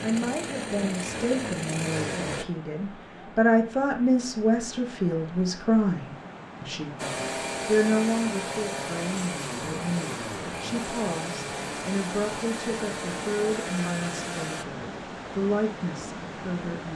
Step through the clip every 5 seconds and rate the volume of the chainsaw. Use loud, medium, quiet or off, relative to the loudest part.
loud, loud, loud, off.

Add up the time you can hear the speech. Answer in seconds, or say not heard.
17 s.